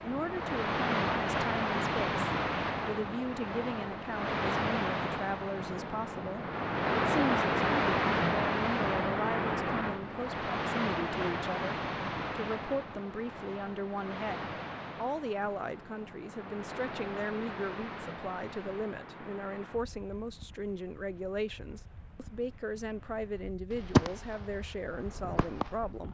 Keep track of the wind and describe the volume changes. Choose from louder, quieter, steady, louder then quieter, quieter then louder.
quieter.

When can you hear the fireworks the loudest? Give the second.
24 s.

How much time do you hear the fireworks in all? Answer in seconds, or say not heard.
2 s.